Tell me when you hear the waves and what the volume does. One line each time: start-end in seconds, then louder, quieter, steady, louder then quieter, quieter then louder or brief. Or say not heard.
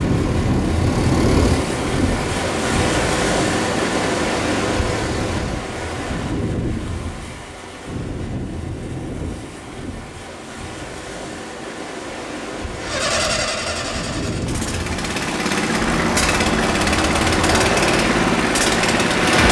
0.0-19.4 quieter then louder.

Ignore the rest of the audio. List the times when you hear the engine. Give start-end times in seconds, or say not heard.
0.0-5.5, 12.8-19.4.